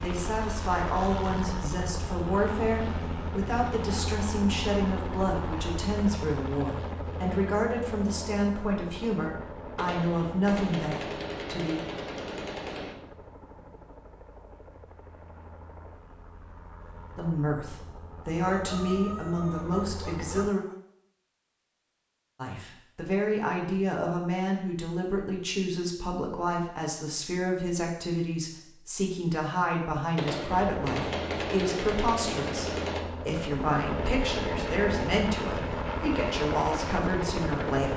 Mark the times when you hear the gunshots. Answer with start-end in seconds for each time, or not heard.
9.8-12.9, 30.1-33.0.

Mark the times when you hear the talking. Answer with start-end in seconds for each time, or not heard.
0.0-11.8, 17.1-20.6, 22.4-37.9.